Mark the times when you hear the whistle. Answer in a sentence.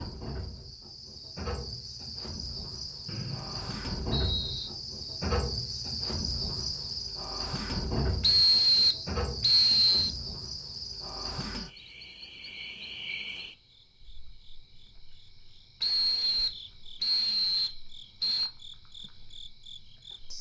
You can hear the whistle from 3.0 to 4.7 s, from 8.2 to 10.1 s and from 15.8 to 18.5 s.